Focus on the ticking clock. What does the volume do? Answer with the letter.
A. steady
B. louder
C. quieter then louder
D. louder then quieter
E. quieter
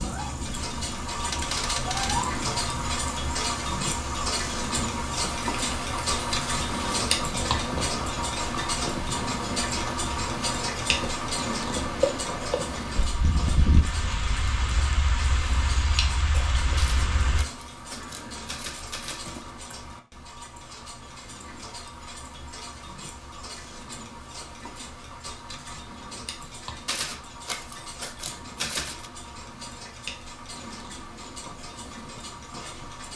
E.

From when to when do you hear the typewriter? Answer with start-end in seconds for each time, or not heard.
1.2-2.2, 16.8-19.5, 26.9-29.1.